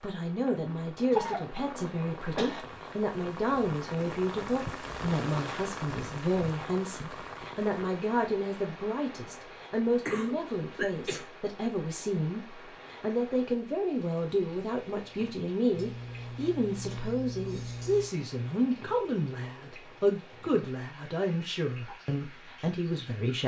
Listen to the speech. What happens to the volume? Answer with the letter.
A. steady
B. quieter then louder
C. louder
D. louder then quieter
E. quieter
A.